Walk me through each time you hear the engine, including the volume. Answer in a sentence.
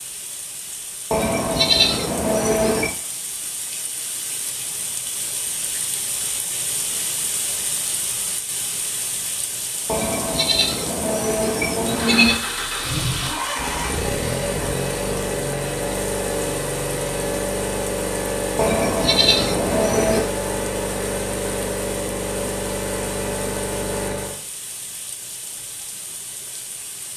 The engine can be heard from 11.8 to 24.4 s, at a steady volume.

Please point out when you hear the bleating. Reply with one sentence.
You can hear the bleating from 1.1 to 3.0 s, from 9.8 to 12.4 s and from 18.6 to 20.2 s.